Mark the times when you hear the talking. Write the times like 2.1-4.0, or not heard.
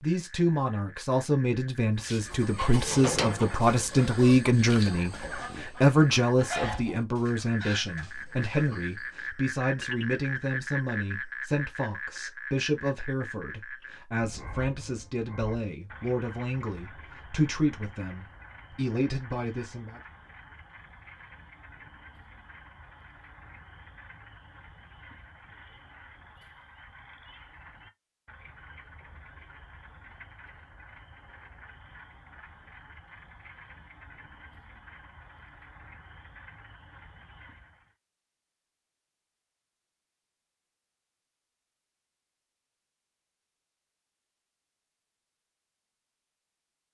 0.0-20.0.